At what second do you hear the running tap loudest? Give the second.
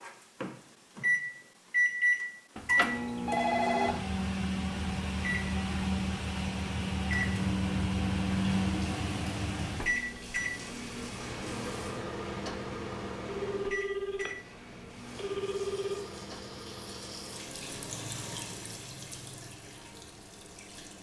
18 s.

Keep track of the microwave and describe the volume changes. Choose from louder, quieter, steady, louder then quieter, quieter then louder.
quieter.